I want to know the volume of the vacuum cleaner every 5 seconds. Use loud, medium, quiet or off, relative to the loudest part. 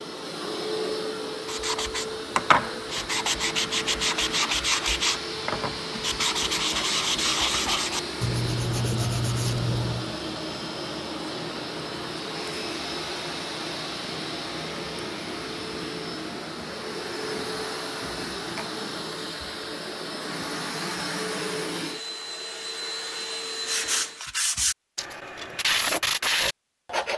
loud, loud, loud, loud, loud, off.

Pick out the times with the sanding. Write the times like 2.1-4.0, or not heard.
1.4-10.2, 23.6-27.1.